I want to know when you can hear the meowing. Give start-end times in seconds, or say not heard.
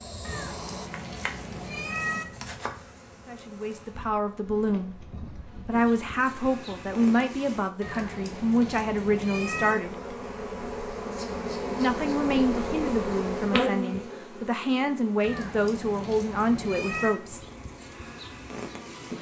0.2-2.2, 7.8-9.8, 15.2-17.2.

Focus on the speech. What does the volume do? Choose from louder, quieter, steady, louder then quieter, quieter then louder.
steady.